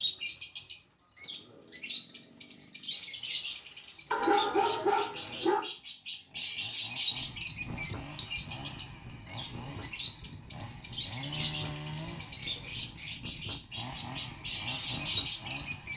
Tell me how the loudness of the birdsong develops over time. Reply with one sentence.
The loudness of the birdsong stays about the same.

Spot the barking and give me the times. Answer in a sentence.
You can hear the barking from 4.1 to 5.7 s.